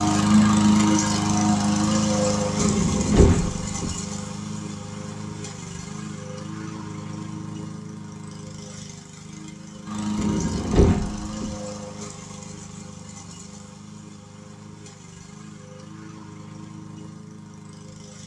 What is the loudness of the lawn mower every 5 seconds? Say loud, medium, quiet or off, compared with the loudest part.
loud, quiet, quiet, quiet.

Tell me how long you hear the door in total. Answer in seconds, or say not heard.
3 s.